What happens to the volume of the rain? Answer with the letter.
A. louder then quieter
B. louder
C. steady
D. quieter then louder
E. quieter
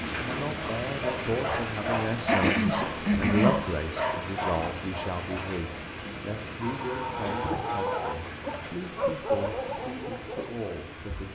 E.